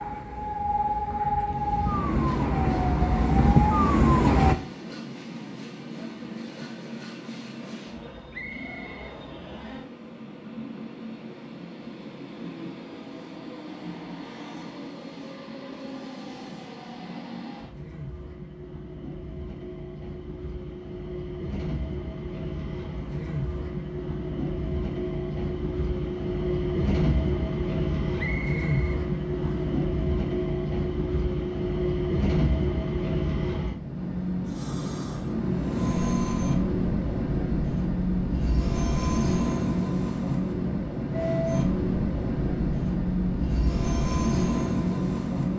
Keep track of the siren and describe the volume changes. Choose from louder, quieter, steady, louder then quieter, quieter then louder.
louder.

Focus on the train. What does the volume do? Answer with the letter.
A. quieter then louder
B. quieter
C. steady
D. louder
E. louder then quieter
D.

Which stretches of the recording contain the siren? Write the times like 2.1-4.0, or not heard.
0.0-4.5.